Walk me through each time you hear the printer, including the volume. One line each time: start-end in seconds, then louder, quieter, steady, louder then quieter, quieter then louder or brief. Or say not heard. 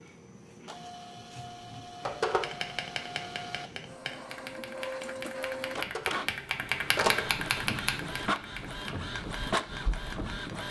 0.0-10.6 louder.